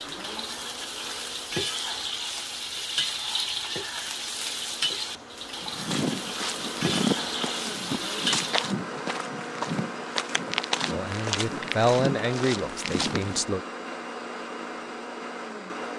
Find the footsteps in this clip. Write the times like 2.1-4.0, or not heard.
5.6-13.4.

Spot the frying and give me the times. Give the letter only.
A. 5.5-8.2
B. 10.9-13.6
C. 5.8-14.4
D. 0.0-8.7
D.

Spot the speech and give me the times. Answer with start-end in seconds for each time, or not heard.
10.9-13.6.